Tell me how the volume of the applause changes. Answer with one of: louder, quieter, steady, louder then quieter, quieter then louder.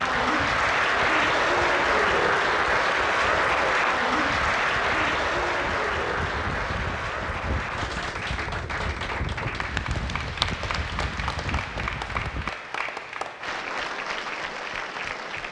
quieter.